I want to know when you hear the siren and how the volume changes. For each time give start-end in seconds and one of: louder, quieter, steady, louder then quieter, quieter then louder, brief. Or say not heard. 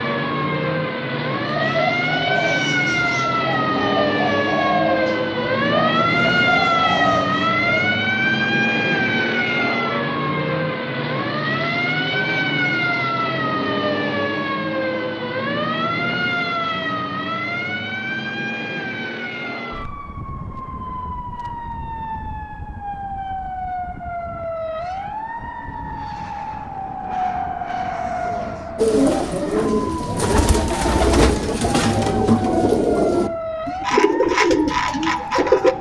0.0-35.7 quieter.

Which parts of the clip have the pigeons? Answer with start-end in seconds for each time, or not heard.
1.4-8.0, 28.8-35.7.